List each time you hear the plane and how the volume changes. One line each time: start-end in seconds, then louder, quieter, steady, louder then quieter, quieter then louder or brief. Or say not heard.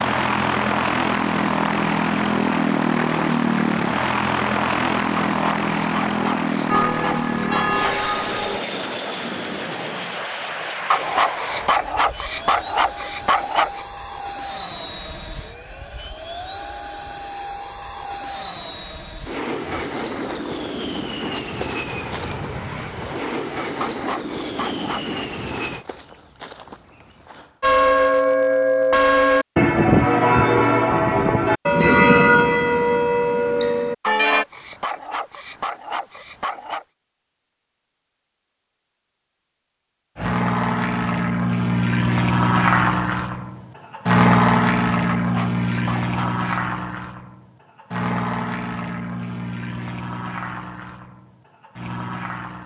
0.0-25.9 quieter
40.1-52.6 quieter.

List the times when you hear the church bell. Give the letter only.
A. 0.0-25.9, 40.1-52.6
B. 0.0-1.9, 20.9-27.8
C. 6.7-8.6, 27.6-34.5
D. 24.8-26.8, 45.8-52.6
C.